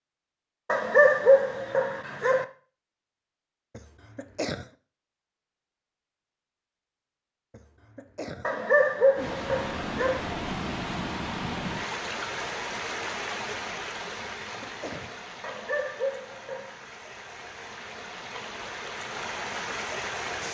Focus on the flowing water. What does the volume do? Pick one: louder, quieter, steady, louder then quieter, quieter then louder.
quieter then louder.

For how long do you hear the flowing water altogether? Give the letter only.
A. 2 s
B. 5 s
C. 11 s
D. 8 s
C.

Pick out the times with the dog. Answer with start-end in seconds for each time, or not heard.
0.7-2.5, 8.4-10.2, 15.4-16.8.